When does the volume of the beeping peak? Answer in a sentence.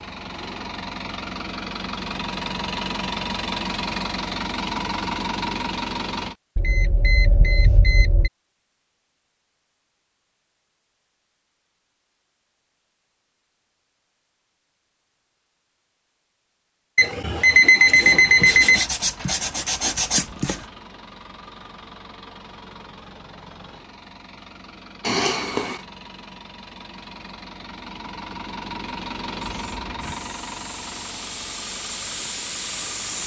The loudest moment of the beeping is at 18 seconds.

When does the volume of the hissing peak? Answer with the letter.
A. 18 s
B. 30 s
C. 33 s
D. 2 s
C.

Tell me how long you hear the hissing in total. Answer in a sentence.
The hissing can be heard for 4 seconds in total.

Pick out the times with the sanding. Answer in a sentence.
You can hear the sanding from 17.9 to 20.6 s.